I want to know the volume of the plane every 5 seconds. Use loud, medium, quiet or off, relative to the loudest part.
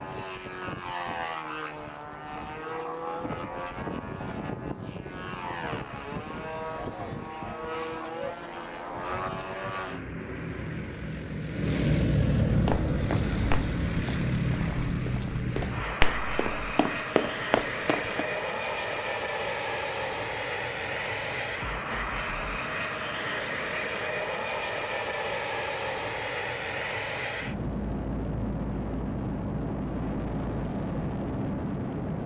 medium, medium, loud, loud, loud, loud, loud.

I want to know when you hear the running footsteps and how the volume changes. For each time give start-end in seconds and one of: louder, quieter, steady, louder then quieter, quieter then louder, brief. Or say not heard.
12.7-18.2 quieter then louder.